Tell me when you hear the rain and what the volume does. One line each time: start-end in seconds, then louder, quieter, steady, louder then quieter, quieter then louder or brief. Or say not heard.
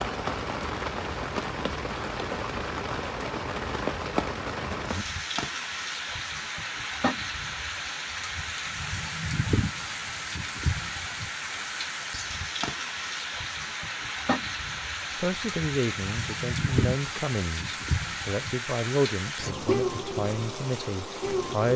0.0-21.7 steady.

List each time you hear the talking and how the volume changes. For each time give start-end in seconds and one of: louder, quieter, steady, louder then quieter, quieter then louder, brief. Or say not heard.
15.2-21.7 steady.